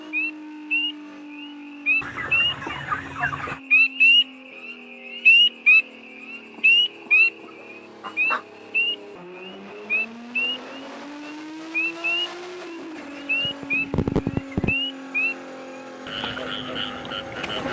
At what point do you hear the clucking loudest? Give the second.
14 s.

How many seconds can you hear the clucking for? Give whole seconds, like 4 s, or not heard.
5 s.